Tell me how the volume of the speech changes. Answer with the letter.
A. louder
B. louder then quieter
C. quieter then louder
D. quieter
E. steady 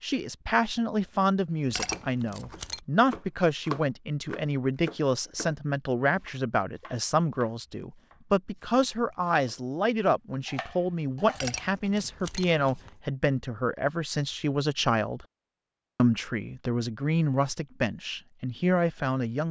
E.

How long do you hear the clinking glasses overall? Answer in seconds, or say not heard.
3 s.